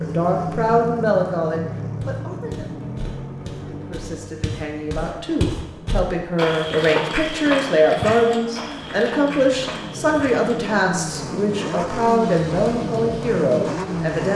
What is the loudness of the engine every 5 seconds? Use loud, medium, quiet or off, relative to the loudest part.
loud, medium, loud.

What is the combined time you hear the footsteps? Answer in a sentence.
The footsteps can be heard for 9 seconds in total.